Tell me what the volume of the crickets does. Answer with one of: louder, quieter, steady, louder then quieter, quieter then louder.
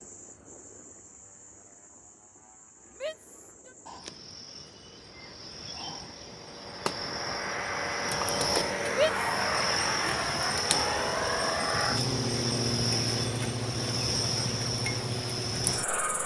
louder.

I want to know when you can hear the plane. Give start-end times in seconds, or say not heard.
0.0-16.2.